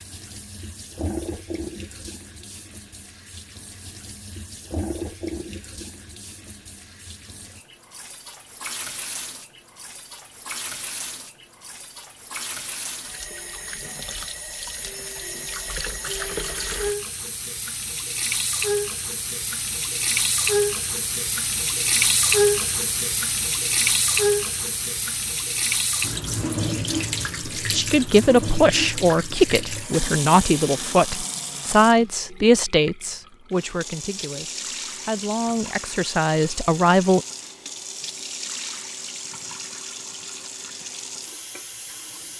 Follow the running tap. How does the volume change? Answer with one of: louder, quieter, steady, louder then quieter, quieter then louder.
louder then quieter.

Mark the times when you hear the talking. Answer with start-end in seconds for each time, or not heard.
27.6-37.2.